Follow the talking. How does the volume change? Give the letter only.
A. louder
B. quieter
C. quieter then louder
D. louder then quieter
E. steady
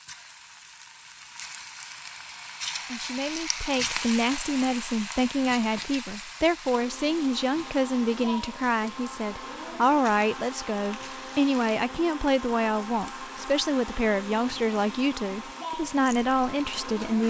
E.